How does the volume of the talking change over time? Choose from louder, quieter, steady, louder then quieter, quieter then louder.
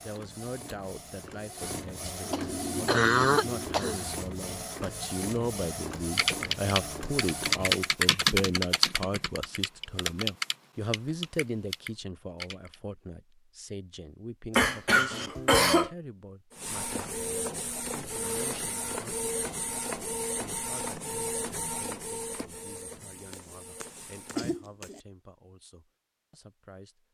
louder then quieter.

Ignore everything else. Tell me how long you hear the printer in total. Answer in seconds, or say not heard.
16 s.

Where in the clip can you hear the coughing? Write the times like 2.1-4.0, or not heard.
2.3-4.0, 14.5-15.9, 23.3-25.0.